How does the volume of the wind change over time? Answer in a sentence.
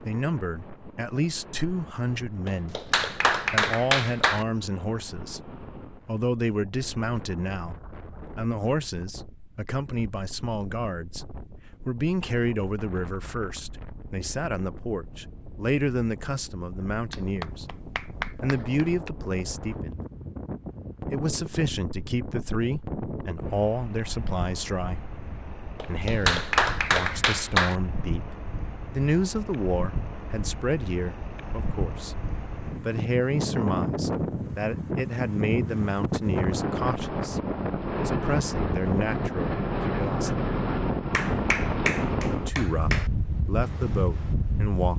The volume of the wind goes up.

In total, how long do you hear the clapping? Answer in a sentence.
You can hear the clapping for 8 seconds altogether.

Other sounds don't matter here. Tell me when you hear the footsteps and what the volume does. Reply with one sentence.
The footsteps can't be heard in this clip.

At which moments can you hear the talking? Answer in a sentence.
The talking can be heard from 0.0 to 20.0 s, from 21.1 to 40.5 s and from 42.4 to 44.9 s.